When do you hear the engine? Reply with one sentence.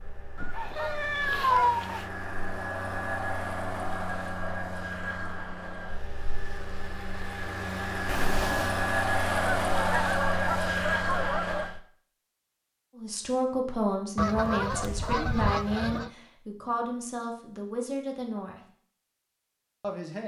The engine can be heard from 0.0 to 11.8 s.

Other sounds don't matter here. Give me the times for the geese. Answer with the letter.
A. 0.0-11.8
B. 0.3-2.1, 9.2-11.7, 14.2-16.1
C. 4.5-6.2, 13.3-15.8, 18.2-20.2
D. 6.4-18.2
B.